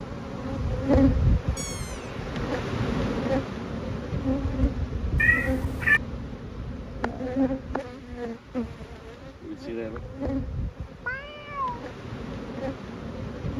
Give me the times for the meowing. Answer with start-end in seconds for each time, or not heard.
1.6-2.1, 5.2-6.0, 11.1-11.8.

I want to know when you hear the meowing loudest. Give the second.
6 s.